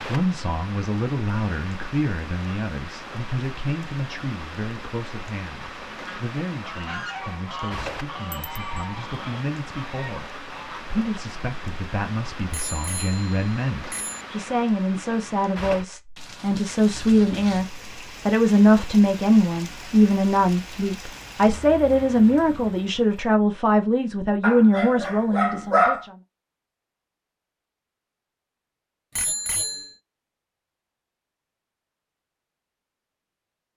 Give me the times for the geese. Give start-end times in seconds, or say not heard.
5.6-10.8.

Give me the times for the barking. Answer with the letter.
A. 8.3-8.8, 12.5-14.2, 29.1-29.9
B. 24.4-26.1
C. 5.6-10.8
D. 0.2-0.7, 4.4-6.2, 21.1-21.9
B.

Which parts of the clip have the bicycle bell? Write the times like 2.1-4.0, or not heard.
8.3-8.8, 12.5-14.2, 29.1-29.9.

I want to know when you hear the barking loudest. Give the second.
26 s.